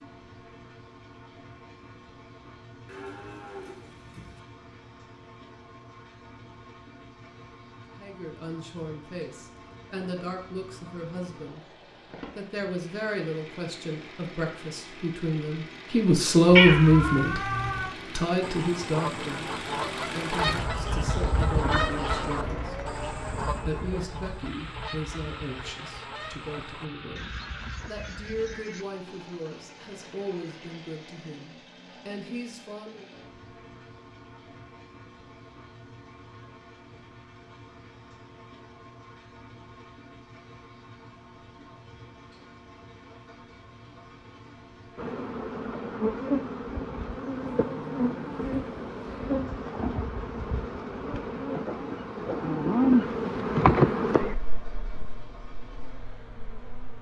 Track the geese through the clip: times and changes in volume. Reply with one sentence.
You can hear the geese from 18.4 to 28.9 s, getting quieter.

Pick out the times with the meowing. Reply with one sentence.
The meowing can be heard from 16.5 to 17.9 s.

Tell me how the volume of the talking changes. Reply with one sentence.
The volume of the talking goes up, then down.